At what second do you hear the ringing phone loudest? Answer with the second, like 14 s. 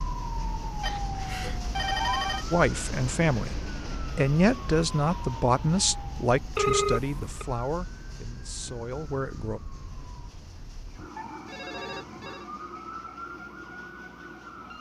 7 s.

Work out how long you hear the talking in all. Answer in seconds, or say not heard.
7 s.